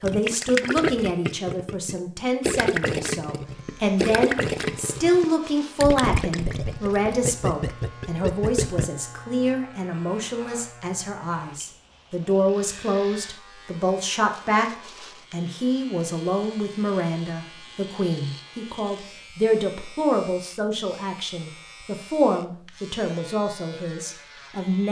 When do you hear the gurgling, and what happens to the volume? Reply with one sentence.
The gurgling can be heard from 0.0 to 8.8 s, at a steady volume.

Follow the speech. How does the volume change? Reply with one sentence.
The loudness of the speech stays about the same.